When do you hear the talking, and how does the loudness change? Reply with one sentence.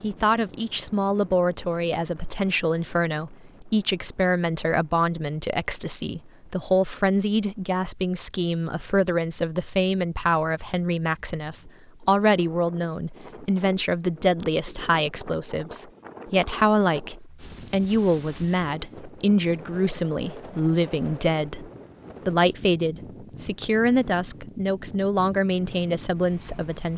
The talking can be heard from 0.0 to 26.9 s, at a steady volume.